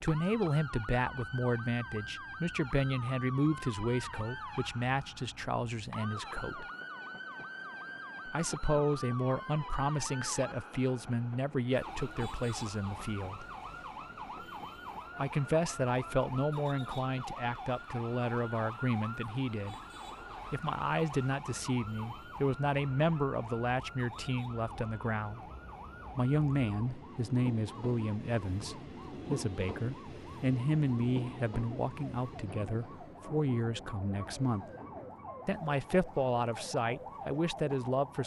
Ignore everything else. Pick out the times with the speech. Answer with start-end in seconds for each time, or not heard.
0.0-6.7, 8.2-13.4, 15.2-19.8, 20.5-25.4, 26.1-34.6, 35.5-38.2.